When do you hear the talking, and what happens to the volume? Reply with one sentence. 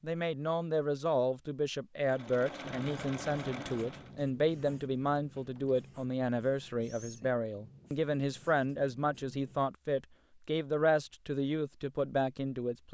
You can hear the talking from 0.0 to 12.8 s, at a steady volume.